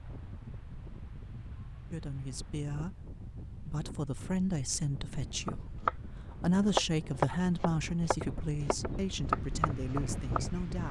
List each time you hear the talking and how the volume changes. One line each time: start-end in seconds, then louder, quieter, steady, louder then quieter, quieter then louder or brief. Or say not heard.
1.9-10.8 louder then quieter.